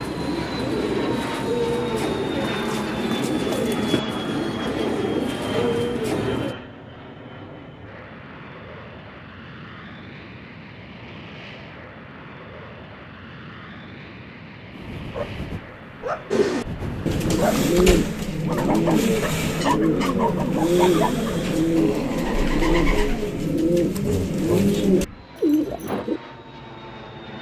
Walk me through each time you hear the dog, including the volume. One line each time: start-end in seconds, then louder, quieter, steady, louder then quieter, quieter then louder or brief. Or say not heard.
14.7-22.6 steady.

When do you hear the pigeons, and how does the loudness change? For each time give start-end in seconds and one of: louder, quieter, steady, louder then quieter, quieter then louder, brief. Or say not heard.
0.0-6.5 steady
16.3-26.2 steady.